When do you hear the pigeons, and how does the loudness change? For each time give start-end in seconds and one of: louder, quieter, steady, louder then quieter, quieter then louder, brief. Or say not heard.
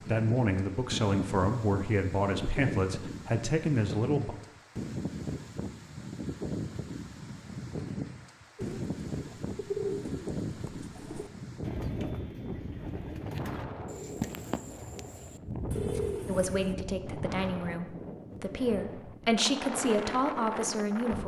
8.6-16.8 quieter then louder.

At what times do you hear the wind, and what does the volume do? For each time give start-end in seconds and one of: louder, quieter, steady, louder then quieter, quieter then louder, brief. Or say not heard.
0.0-21.2 steady.